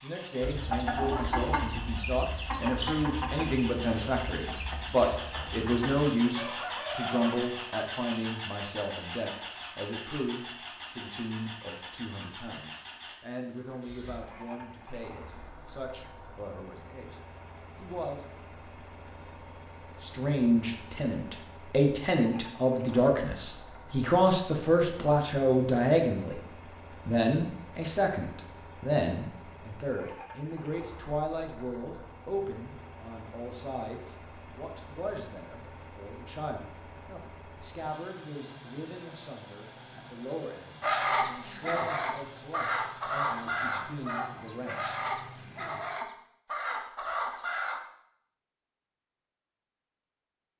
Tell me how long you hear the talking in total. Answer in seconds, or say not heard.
43 s.